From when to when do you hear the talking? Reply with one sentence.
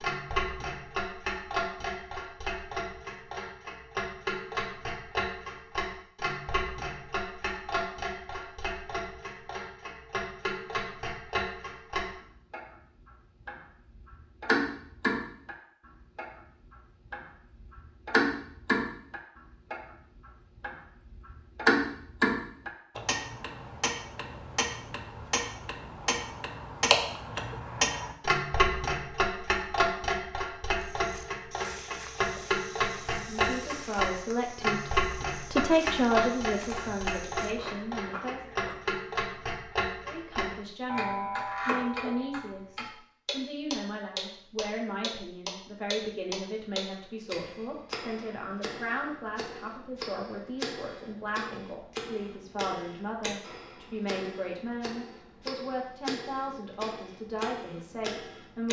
You can hear the talking from 33.1 to 38.5 s and from 40.0 to 58.6 s.